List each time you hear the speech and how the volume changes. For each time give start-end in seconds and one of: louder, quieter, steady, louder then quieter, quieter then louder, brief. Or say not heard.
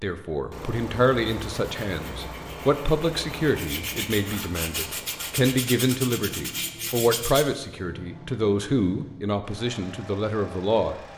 0.0-10.9 steady.